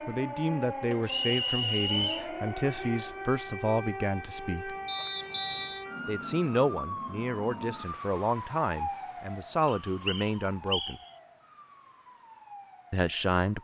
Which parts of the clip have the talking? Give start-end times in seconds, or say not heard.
0.1-4.8, 6.0-11.0, 12.9-13.5.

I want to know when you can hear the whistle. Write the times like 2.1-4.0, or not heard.
1.1-2.4, 4.8-5.8, 9.7-11.1.